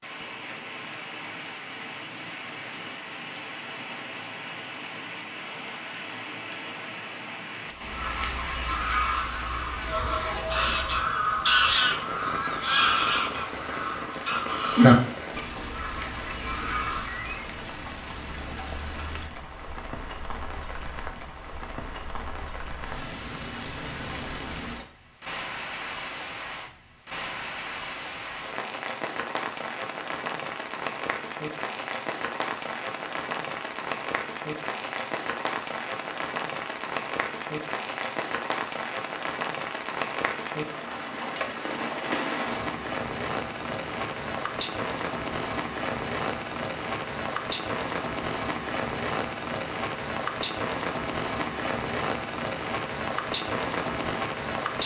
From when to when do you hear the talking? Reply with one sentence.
The talking can't be heard in this clip.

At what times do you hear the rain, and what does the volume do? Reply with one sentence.
The rain can be heard from 0.0 to 54.8 s, getting louder.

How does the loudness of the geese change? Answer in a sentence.
The volume of the geese goes up, then down.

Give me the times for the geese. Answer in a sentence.
You can hear the geese from 7.8 to 17.4 s.